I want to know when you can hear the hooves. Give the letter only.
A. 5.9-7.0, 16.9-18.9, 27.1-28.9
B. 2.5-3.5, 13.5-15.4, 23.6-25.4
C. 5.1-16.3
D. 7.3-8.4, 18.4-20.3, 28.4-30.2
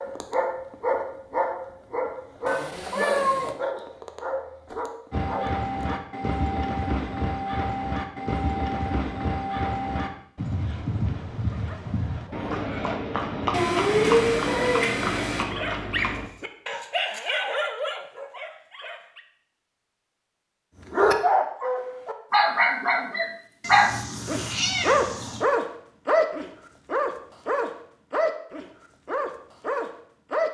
C.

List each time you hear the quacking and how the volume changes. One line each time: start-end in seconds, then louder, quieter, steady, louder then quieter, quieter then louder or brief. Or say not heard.
not heard.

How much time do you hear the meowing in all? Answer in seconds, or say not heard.
5 s.